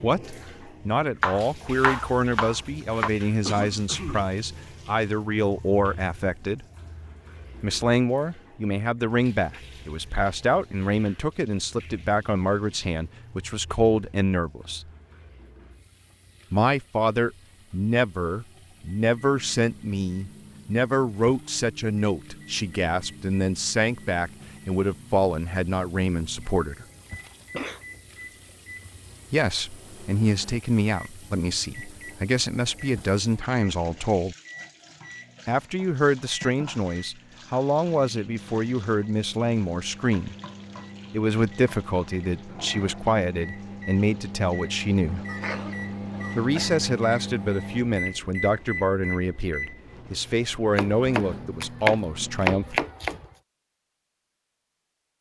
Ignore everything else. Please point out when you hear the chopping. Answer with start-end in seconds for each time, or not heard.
1.2-3.1, 50.8-53.2.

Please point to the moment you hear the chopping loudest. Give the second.
53 s.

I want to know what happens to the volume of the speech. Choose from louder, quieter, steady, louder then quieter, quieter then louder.
steady.